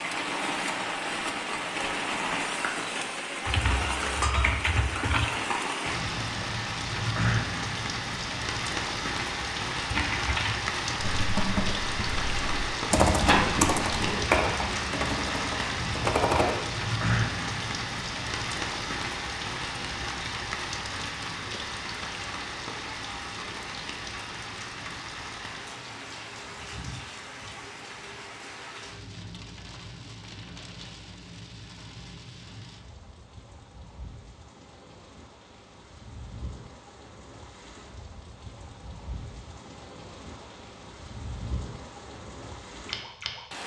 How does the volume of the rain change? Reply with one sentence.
The loudness of the rain goes down.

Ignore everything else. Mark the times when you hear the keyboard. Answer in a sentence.
The keyboard can be heard from 3.5 to 5.2 s and from 9.9 to 16.6 s.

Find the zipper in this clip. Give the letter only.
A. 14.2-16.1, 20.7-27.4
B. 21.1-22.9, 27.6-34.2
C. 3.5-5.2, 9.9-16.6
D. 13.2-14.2
D.